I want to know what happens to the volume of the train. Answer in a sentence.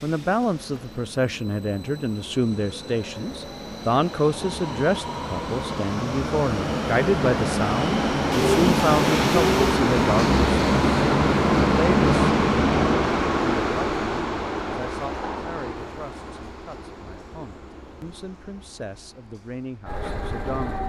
The loudness of the train goes up, then down.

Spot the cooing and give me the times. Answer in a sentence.
The cooing can be heard from 8.3 to 9.8 s.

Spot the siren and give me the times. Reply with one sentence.
The siren can't be heard in this clip.